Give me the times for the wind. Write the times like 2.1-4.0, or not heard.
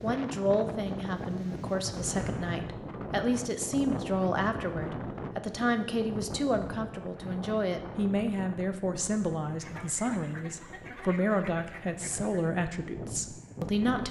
0.0-14.0.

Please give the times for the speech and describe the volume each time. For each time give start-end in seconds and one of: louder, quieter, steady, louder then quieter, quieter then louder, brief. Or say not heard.
0.0-14.0 steady.